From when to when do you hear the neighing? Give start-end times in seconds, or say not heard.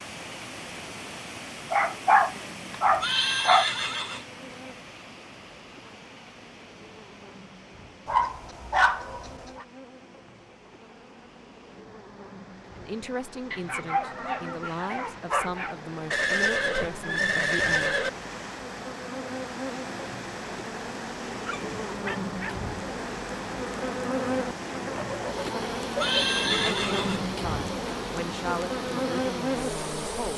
3.0-4.2, 16.1-18.1, 25.9-27.2.